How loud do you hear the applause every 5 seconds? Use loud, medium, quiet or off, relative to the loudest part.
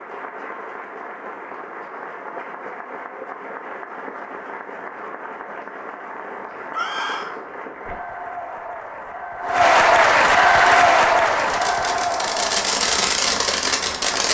quiet, medium, loud.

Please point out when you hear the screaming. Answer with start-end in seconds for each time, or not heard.
6.7-7.3.